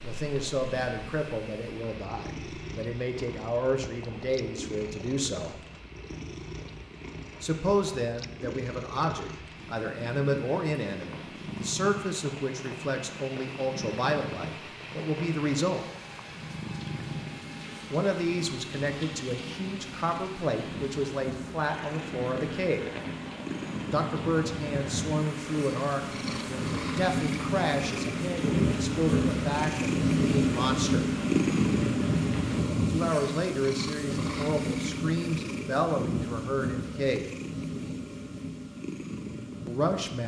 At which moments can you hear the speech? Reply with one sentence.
You can hear the speech from 0.0 to 5.5 s, from 7.4 to 15.8 s, from 17.9 to 22.9 s, from 23.9 to 31.1 s, from 32.9 to 37.3 s and from 39.6 to 40.2 s.